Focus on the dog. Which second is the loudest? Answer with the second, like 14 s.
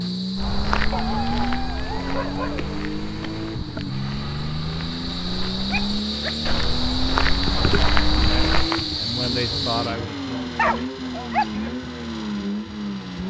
11 s.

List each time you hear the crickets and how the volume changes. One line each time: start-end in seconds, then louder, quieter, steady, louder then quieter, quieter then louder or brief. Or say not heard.
0.0-9.9 louder.